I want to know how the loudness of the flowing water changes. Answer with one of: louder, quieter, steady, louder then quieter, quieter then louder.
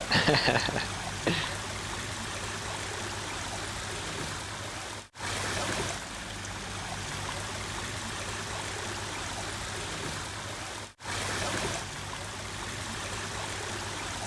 steady.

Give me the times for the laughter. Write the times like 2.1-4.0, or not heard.
0.1-1.6.